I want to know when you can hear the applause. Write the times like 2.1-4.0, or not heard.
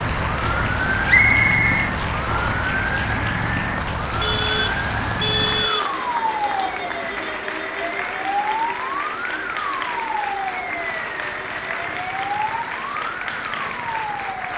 0.0-14.5.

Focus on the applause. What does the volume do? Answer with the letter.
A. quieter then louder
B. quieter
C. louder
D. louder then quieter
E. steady
E.